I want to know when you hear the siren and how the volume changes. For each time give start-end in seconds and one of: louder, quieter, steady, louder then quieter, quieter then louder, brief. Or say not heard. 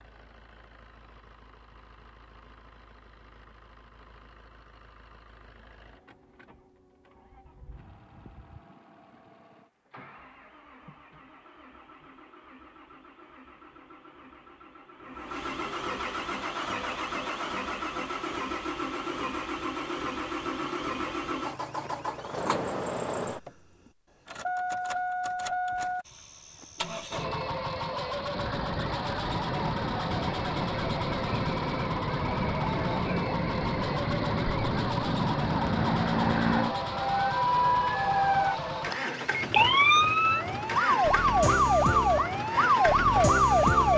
28.3-43.9 louder.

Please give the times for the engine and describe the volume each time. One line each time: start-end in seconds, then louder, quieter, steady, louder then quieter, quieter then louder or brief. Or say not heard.
0.0-43.9 louder.